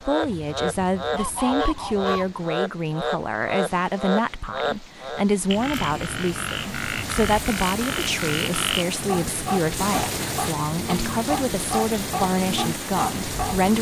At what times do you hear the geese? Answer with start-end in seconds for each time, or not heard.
0.2-2.3.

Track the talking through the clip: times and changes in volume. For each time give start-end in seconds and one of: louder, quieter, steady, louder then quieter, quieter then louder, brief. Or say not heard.
0.0-13.7 steady.